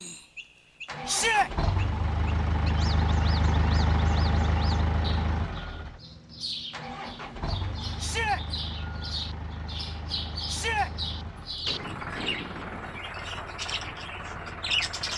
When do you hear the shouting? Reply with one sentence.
You can hear the shouting from 1.1 to 1.5 s, from 8.0 to 8.4 s and from 10.4 to 10.9 s.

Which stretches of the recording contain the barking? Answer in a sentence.
You can't hear the barking here.